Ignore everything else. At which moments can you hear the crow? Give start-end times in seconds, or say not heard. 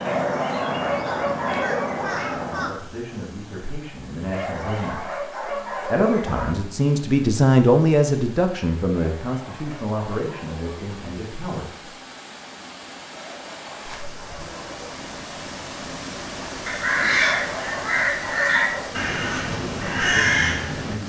0.0-2.8, 16.6-20.9.